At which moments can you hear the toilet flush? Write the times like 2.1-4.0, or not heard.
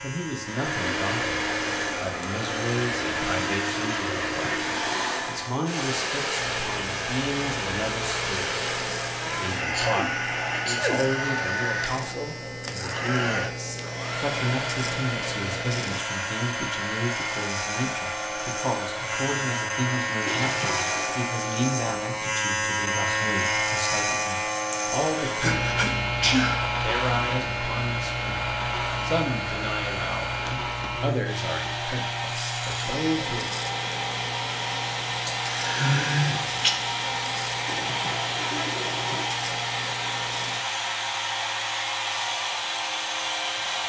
3.0-5.0, 20.2-21.2, 37.6-39.3.